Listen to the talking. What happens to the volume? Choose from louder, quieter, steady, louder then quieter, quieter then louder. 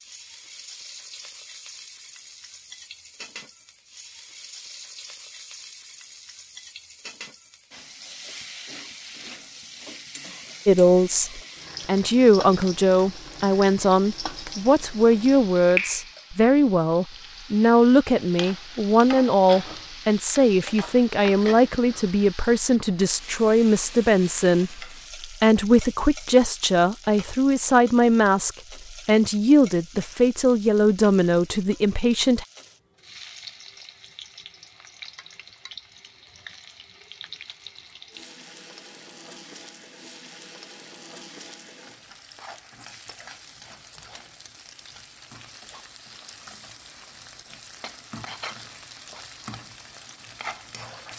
steady.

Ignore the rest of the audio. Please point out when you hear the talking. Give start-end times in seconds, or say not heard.
10.7-32.5.